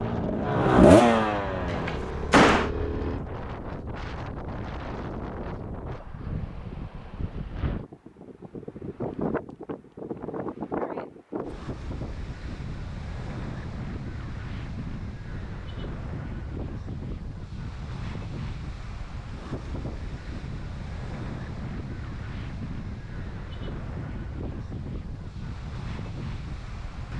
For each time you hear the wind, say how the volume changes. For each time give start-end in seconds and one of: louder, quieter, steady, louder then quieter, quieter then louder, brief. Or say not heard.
0.0-27.1 steady.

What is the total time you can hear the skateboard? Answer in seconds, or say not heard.
not heard.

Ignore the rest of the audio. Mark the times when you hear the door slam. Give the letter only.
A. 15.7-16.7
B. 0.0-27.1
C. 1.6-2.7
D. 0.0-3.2
C.